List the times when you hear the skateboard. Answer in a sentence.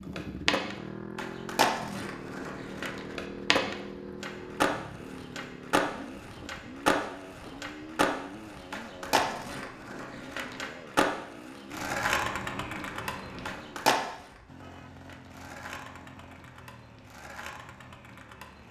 You can hear the skateboard from 0.1 to 18.6 s.